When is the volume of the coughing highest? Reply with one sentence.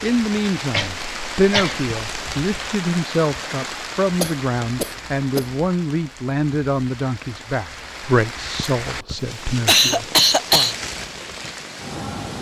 The loudest moment of the coughing is at 10 seconds.